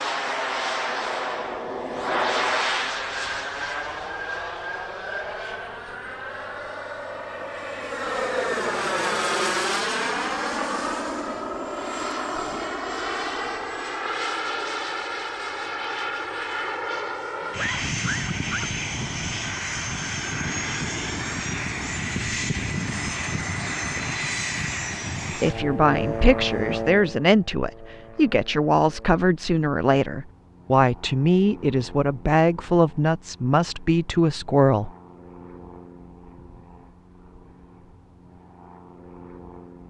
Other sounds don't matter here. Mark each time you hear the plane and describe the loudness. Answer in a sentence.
The plane can be heard from 0.0 to 39.8 s, getting quieter.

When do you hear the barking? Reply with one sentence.
You can hear the barking from 17.4 to 18.7 s.